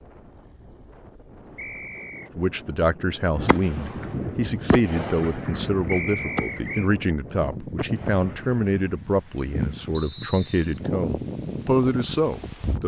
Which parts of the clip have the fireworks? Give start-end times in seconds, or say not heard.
3.4-9.0.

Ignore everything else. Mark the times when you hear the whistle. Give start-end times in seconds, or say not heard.
1.6-2.3, 5.8-6.9, 9.9-10.8.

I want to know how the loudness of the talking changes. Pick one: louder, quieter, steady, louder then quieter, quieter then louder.
steady.